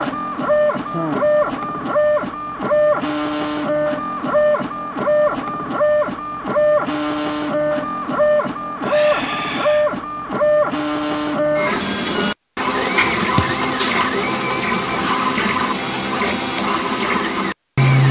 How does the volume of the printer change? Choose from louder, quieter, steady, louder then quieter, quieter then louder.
steady.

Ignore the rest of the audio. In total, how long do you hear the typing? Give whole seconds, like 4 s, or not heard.
not heard.